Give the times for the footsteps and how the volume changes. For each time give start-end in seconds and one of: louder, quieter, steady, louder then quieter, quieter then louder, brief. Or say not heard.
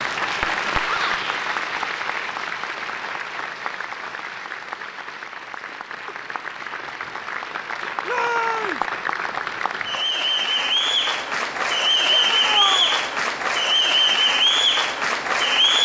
not heard.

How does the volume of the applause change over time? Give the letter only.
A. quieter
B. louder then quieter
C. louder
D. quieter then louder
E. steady
D.